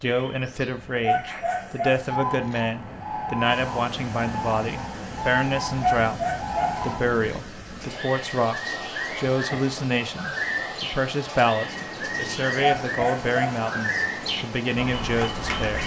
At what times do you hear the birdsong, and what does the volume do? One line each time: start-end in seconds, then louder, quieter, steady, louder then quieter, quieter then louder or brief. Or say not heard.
0.0-15.8 steady.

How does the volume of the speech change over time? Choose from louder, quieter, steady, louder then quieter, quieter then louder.
steady.